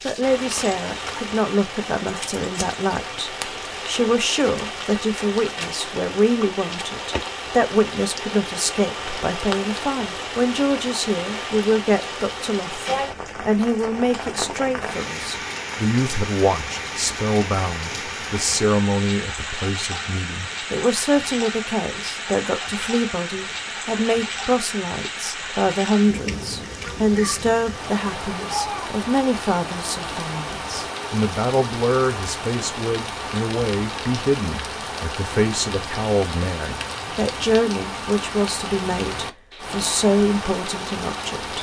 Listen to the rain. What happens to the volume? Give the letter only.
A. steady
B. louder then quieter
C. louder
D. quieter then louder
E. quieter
A.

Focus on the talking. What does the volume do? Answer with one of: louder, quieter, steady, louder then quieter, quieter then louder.
steady.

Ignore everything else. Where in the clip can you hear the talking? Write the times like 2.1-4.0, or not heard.
0.1-41.5.